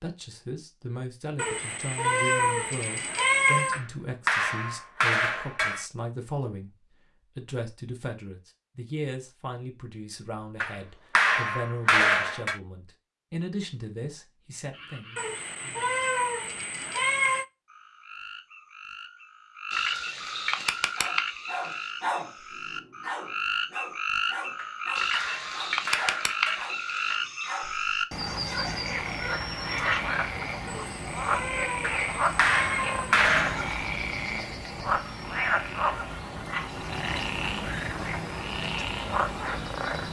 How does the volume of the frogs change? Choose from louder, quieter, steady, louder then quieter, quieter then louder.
louder.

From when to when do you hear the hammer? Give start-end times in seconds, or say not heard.
3.7-5.8, 10.6-12.6, 24.6-27.2, 31.8-33.8.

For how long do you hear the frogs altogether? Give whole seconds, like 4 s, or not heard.
25 s.